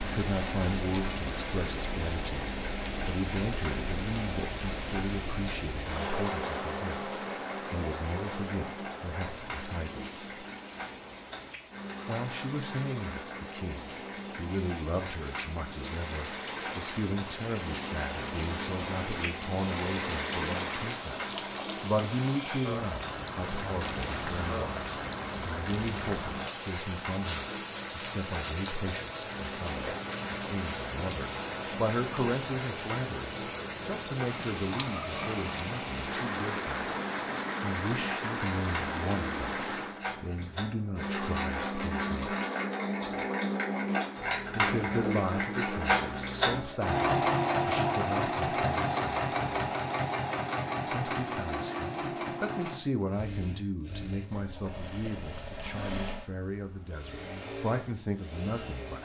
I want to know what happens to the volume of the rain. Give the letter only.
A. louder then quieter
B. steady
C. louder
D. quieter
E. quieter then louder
E.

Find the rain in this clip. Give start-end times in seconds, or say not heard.
0.0-40.0.